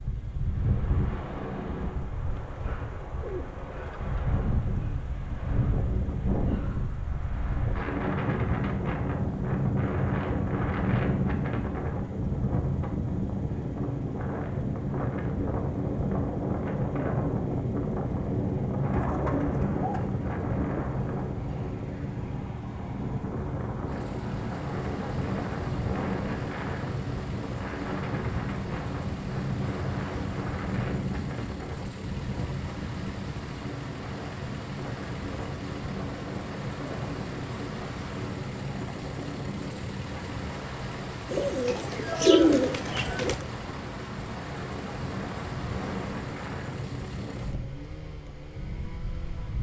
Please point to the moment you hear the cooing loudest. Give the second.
42 s.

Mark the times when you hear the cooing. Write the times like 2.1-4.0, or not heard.
2.4-4.1, 18.9-20.9, 41.2-43.5.